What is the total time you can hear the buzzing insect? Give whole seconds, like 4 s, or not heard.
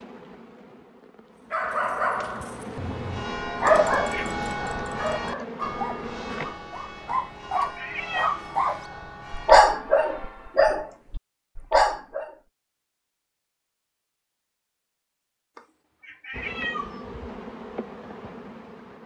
9 s.